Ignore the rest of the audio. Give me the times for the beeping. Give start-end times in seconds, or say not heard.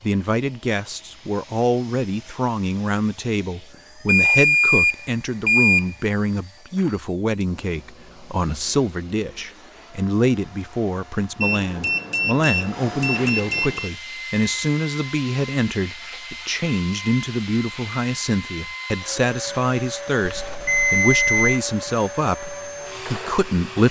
4.0-6.0, 11.4-13.9, 20.2-21.6.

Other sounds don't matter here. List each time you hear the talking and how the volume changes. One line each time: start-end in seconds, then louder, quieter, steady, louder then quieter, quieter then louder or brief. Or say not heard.
0.0-23.8 steady.